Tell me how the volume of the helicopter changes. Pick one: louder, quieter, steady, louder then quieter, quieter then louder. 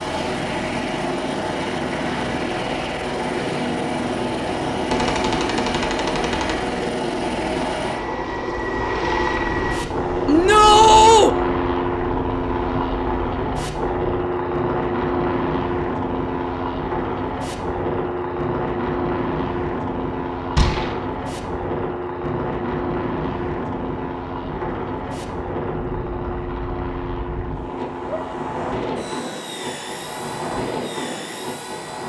quieter.